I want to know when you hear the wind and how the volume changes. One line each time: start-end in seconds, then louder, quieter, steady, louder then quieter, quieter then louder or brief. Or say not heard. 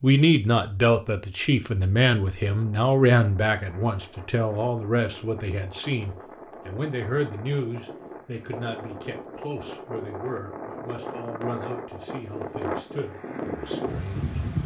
2.5-14.6 louder.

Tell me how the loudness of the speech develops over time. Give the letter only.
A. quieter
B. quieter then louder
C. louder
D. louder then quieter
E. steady
A.